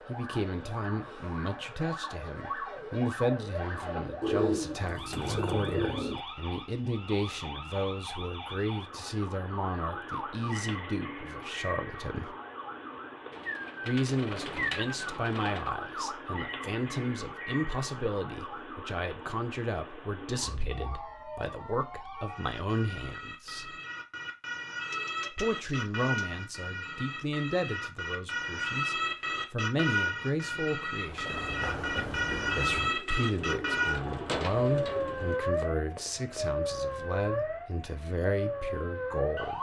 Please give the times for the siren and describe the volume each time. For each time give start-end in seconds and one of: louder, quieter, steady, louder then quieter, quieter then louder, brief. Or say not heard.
0.0-39.5 louder.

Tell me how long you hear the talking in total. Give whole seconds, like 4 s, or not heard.
35 s.